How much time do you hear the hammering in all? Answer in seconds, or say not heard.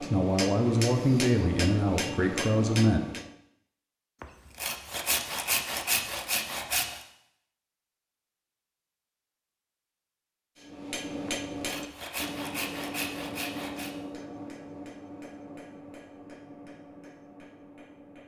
11 s.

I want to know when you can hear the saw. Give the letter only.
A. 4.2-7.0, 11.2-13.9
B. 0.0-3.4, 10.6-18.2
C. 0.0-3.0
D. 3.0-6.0
A.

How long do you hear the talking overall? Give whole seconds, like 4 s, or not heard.
3 s.